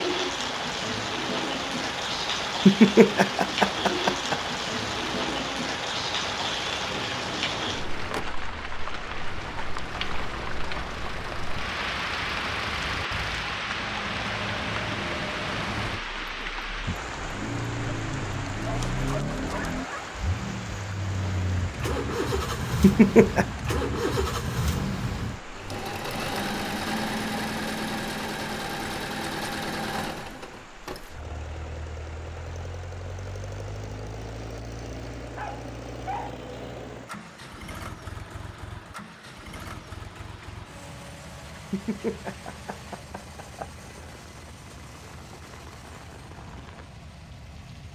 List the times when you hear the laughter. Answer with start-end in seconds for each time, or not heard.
2.6-4.4, 22.8-23.4, 41.7-43.7.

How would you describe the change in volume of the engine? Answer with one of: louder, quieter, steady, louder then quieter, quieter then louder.
louder then quieter.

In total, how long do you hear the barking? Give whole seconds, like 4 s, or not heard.
3 s.